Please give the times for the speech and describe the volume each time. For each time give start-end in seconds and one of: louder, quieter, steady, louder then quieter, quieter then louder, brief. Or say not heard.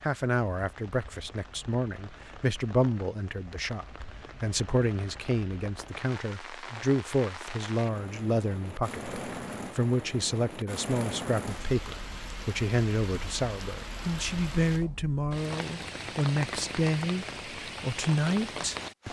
0.0-19.0 steady.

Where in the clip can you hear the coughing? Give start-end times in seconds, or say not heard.
not heard.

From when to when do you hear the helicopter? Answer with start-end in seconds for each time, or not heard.
not heard.